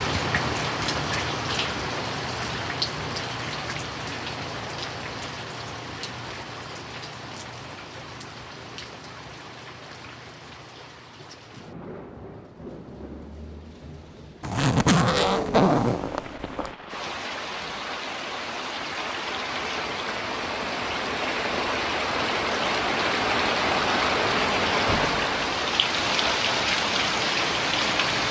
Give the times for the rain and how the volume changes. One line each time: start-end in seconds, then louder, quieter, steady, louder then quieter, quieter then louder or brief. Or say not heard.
0.0-28.2 quieter then louder.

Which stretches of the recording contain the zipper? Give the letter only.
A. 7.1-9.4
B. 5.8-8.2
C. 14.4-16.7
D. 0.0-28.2
C.